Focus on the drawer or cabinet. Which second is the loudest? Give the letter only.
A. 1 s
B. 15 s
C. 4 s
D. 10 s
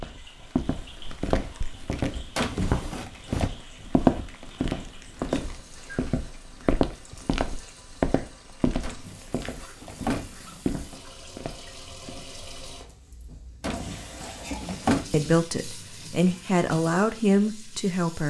B.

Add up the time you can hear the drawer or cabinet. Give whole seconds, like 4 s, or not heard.
5 s.